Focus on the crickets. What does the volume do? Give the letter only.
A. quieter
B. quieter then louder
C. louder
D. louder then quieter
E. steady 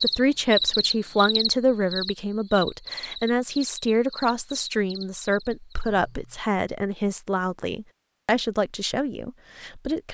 A.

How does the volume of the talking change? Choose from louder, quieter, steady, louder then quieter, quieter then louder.
steady.